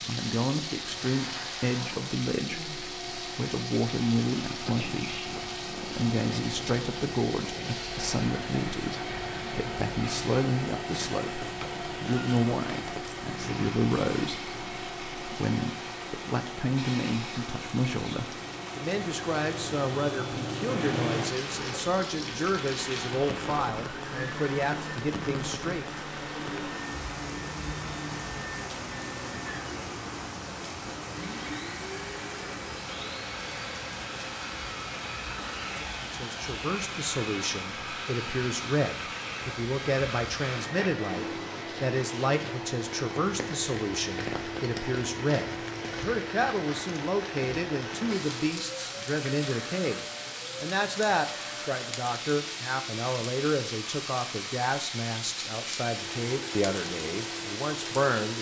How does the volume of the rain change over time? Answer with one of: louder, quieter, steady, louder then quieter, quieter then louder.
steady.